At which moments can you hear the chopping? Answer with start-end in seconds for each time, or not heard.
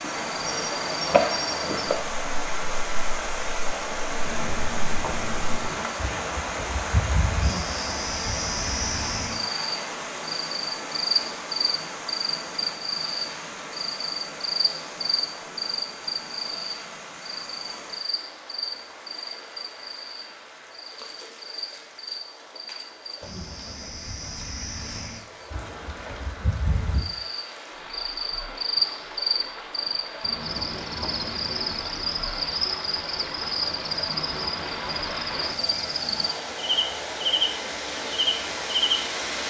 4.2-5.9, 30.2-31.8.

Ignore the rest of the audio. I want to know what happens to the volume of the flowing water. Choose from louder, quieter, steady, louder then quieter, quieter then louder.
quieter then louder.